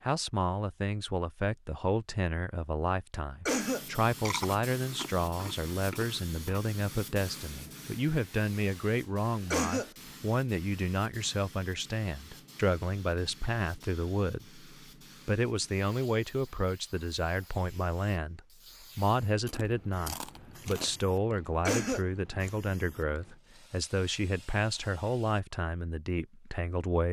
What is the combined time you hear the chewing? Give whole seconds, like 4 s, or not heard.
4 s.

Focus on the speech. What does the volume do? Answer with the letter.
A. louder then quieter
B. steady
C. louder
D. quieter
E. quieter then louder
B.